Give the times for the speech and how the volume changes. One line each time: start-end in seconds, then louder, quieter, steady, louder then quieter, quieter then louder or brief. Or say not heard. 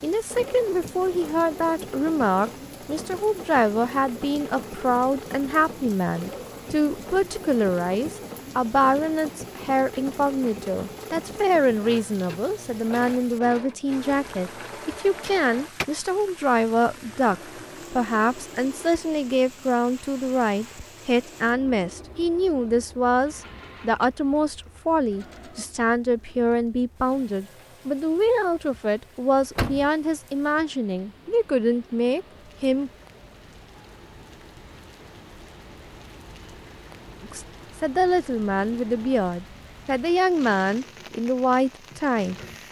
0.0-32.9 steady
37.2-42.6 steady.